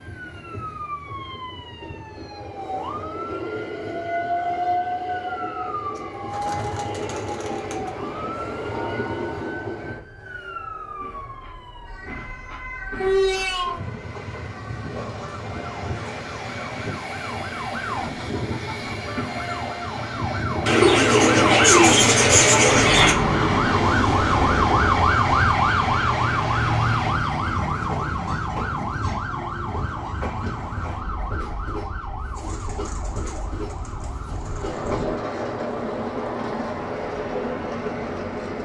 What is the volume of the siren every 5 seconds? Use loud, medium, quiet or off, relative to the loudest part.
quiet, quiet, quiet, quiet, loud, loud, quiet, quiet.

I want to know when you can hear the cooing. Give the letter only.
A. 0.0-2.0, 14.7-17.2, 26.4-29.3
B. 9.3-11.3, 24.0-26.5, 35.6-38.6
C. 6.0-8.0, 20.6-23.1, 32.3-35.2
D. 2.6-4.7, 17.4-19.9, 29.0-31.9
C.